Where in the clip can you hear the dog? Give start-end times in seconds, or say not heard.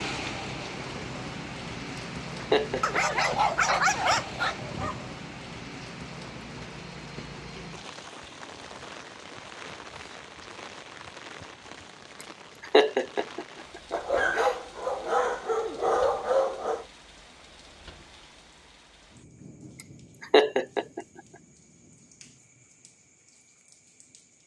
2.8-5.1, 13.9-16.9.